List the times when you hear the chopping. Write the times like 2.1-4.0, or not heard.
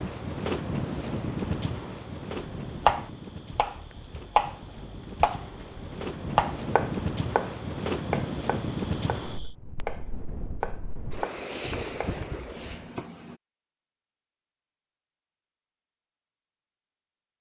2.4-13.3.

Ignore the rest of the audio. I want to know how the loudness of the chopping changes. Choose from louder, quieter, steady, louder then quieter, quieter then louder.
quieter.